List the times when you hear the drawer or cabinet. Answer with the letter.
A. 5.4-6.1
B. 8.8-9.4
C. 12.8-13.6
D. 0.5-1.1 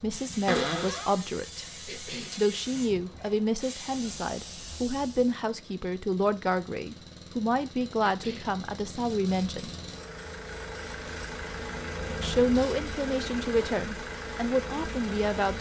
D.